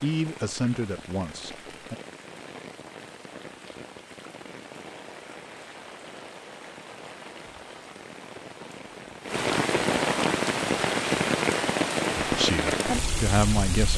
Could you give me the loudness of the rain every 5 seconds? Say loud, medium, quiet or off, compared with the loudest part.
quiet, medium, loud.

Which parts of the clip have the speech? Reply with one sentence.
The speech can be heard from 0.0 to 1.9 s and from 12.2 to 13.9 s.